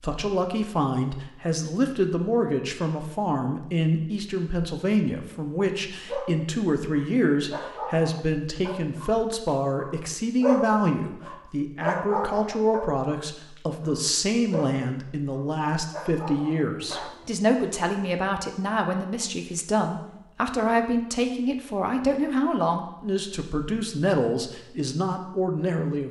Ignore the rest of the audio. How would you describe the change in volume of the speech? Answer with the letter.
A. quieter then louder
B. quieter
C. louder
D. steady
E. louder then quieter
D.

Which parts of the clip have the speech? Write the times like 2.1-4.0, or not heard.
0.0-26.0.